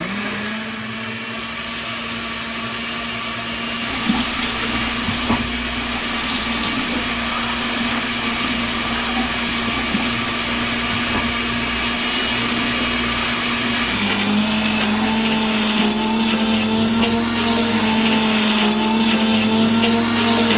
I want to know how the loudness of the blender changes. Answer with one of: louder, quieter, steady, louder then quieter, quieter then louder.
louder.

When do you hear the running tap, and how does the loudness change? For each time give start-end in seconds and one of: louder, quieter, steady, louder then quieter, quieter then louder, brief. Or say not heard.
3.6-20.5 quieter.